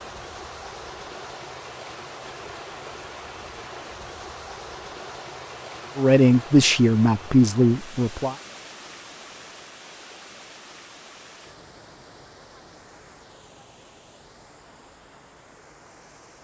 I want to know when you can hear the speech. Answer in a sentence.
You can hear the speech from 6.0 to 8.3 s.